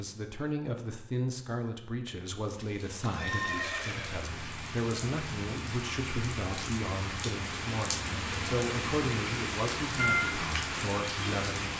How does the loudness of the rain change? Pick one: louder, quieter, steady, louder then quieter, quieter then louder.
louder.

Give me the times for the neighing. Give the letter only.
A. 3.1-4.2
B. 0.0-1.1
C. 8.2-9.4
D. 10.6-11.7
A.